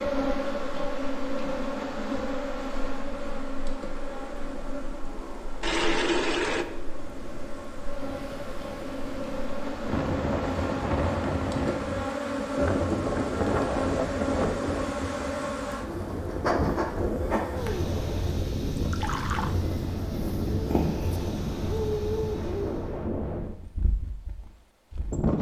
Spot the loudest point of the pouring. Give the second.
6 s.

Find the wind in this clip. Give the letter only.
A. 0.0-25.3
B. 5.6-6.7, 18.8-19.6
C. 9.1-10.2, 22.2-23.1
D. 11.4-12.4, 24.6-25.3
A.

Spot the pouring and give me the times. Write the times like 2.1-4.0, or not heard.
5.6-6.7, 18.8-19.6.